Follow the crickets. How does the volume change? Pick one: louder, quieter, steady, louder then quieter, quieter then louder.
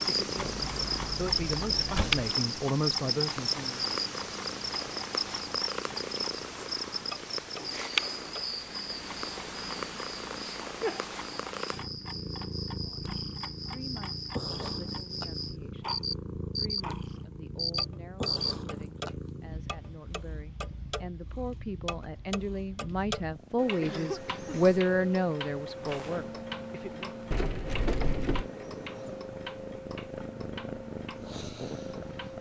quieter then louder.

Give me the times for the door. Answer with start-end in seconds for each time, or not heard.
0.3-2.3, 27.3-28.5.